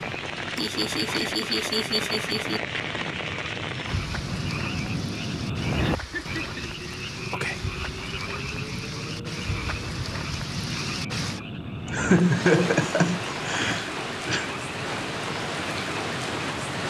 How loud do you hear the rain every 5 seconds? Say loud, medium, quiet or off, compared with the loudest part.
loud, medium, loud, loud.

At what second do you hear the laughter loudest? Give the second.
12 s.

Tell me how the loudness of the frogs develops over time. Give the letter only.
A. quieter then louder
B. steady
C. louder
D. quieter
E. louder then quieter
E.